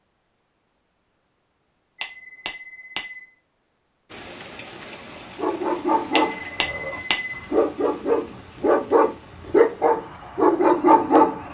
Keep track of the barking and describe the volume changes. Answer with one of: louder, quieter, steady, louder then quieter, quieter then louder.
louder.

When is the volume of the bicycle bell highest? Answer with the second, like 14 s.
7 s.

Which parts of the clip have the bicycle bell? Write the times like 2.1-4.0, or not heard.
1.9-3.3, 6.1-7.5.